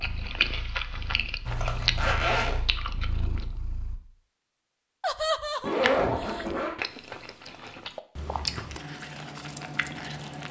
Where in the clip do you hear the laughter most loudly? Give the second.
5 s.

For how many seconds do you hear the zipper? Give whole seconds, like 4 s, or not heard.
2 s.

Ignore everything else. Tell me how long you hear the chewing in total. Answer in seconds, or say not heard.
8 s.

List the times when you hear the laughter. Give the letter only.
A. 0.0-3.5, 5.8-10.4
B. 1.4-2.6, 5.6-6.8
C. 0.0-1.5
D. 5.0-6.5
D.